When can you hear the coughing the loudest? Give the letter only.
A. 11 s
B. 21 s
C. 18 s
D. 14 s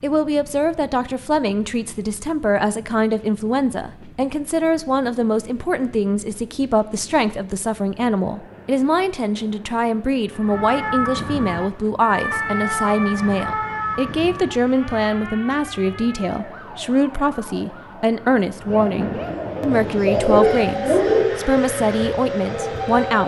B.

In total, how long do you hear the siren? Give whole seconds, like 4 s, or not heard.
13 s.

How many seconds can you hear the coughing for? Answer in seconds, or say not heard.
2 s.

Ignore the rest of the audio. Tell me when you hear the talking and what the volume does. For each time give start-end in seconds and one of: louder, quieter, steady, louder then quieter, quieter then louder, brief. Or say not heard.
0.0-23.2 steady.